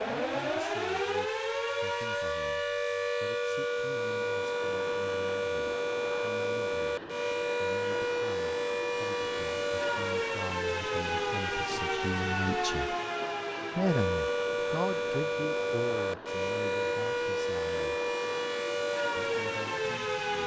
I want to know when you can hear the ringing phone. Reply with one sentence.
You can't hear the ringing phone here.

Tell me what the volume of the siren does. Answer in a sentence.
The loudness of the siren stays about the same.